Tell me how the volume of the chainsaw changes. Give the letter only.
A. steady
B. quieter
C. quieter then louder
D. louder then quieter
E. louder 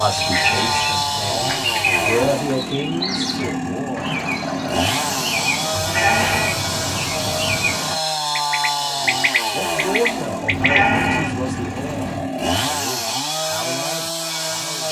A.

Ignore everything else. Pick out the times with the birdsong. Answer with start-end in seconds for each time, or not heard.
0.0-10.9.